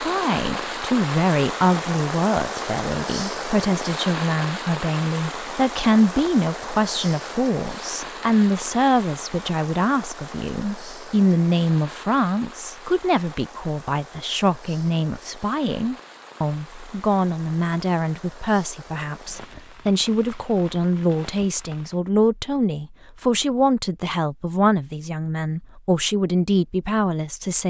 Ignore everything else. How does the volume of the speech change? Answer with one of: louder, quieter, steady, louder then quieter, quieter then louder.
steady.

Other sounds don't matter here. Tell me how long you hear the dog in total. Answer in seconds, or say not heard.
not heard.